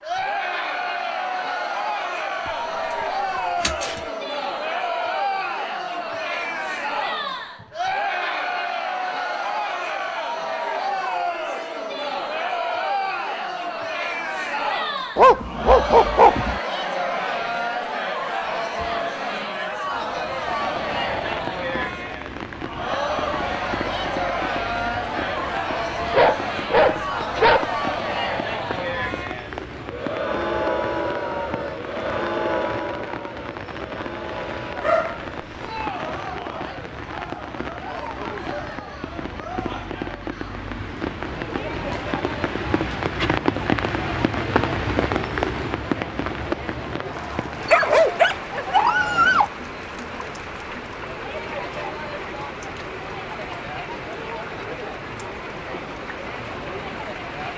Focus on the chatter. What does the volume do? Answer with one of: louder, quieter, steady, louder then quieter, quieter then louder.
quieter.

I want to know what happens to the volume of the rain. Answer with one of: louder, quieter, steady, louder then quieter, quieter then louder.
louder then quieter.